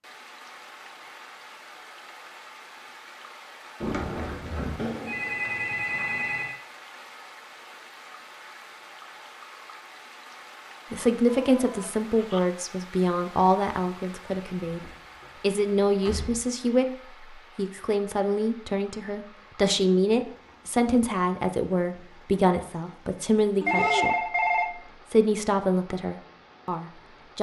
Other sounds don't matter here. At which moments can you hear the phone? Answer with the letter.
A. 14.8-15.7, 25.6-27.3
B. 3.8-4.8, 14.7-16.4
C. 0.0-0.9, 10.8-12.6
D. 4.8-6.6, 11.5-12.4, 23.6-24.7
D.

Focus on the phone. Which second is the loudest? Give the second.
24 s.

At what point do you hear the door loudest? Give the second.
4 s.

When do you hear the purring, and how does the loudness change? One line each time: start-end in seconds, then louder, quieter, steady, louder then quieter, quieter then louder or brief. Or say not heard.
not heard.